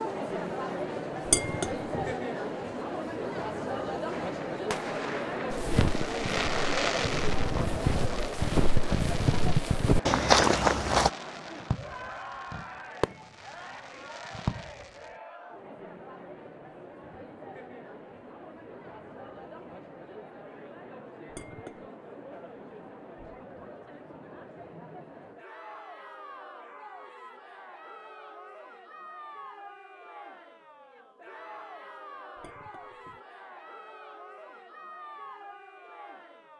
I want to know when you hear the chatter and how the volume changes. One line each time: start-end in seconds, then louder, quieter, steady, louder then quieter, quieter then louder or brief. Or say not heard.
0.0-36.5 quieter.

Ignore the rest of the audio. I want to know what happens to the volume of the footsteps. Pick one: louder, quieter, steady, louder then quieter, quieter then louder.
louder.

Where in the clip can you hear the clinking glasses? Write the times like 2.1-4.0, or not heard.
1.2-2.1, 21.3-21.9, 32.4-33.2.